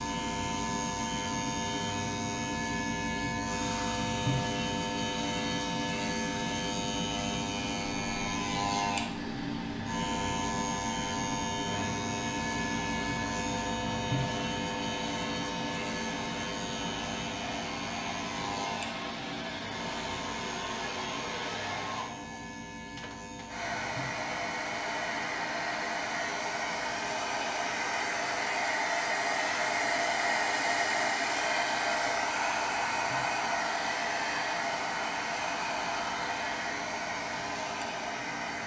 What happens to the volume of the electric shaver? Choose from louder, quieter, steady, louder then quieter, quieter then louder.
quieter.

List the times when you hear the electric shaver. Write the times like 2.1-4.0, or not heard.
0.0-38.6.